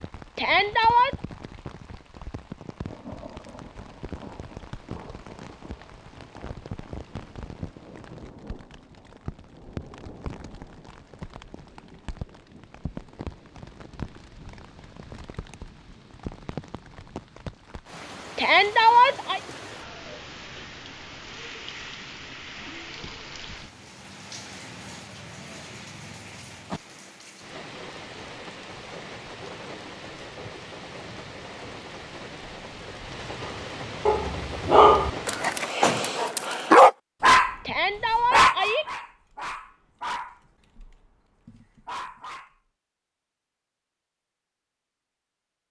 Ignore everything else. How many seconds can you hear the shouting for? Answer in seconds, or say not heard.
3 s.